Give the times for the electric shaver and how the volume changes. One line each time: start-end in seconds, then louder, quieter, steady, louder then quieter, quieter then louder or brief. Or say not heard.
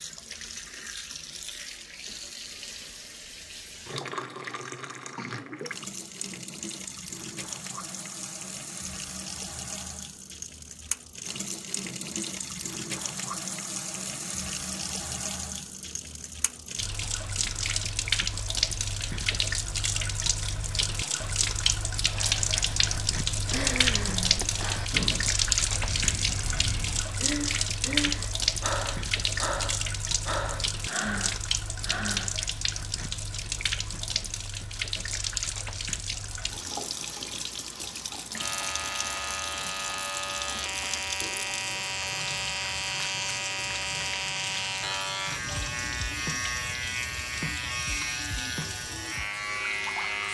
38.4-50.2 steady.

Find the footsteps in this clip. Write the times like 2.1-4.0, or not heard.
not heard.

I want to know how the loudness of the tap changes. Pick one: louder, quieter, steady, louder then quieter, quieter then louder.
louder then quieter.